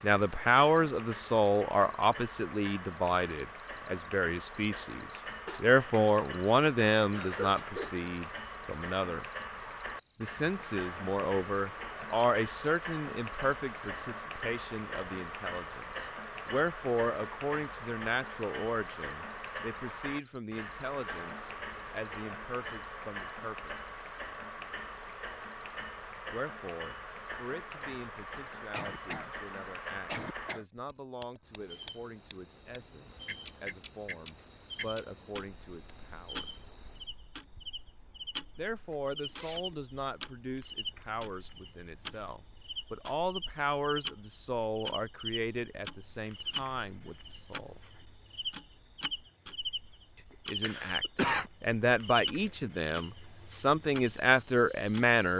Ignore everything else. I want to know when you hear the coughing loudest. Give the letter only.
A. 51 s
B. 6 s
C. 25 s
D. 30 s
A.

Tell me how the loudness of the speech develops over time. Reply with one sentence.
The loudness of the speech goes down, then up.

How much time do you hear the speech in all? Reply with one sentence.
You can hear the speech for 47 seconds altogether.